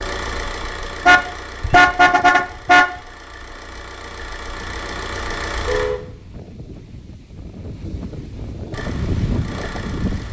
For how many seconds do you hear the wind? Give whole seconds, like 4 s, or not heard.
6 s.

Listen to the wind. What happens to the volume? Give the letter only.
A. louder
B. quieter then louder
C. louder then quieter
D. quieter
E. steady
A.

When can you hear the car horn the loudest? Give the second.
2 s.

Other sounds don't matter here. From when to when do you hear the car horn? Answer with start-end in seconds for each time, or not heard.
1.1-2.9, 5.6-6.0.